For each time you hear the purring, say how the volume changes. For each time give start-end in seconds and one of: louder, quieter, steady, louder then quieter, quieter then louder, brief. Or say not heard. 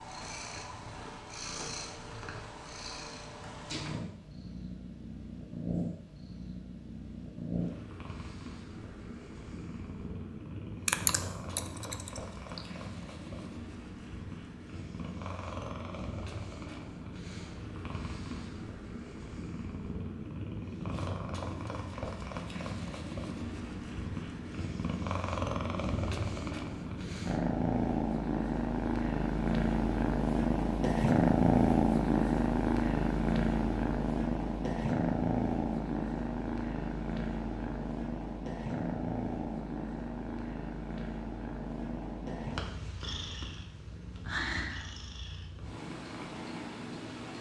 0.0-47.3 louder then quieter.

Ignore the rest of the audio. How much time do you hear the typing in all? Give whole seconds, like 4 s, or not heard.
2 s.